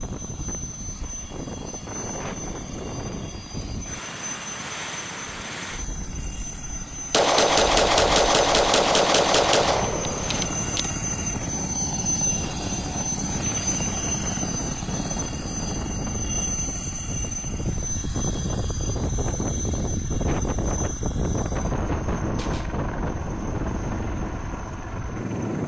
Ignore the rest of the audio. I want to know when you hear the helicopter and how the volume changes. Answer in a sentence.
You can hear the helicopter from 0.0 to 25.6 s, getting louder then quieter.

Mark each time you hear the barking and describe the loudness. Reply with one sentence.
You can't hear the barking here.